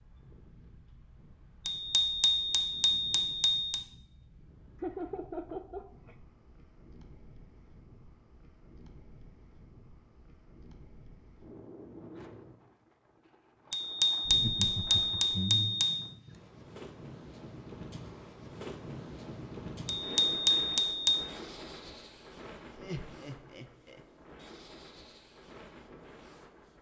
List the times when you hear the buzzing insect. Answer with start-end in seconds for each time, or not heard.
not heard.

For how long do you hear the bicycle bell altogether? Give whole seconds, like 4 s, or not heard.
6 s.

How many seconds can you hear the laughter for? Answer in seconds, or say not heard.
4 s.